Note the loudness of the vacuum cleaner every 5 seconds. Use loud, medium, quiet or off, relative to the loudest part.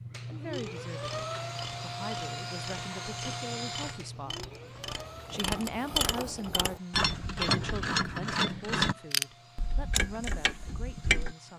loud, quiet, quiet.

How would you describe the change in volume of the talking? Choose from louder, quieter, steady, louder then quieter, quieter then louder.
louder then quieter.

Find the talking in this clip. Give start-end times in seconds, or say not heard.
0.2-4.5, 5.3-11.5.